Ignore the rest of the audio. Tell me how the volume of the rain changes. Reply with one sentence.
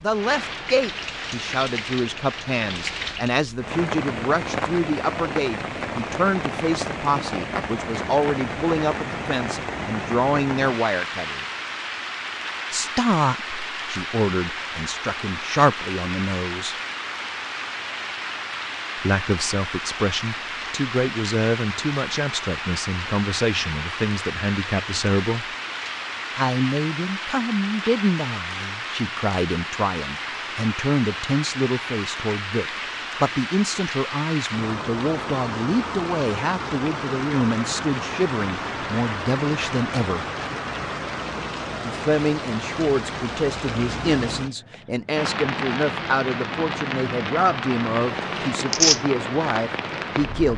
The loudness of the rain stays about the same.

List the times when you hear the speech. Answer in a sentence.
You can hear the speech from 0.0 to 11.4 s, from 12.7 to 16.8 s, from 18.9 to 25.4 s, from 26.4 to 40.2 s and from 41.8 to 50.5 s.